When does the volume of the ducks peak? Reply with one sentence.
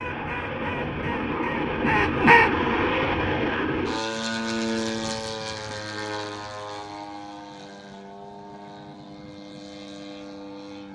The volume of the ducks peaks at 2 seconds.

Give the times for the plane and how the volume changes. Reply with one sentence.
You can hear the plane from 0.0 to 10.9 s, getting quieter.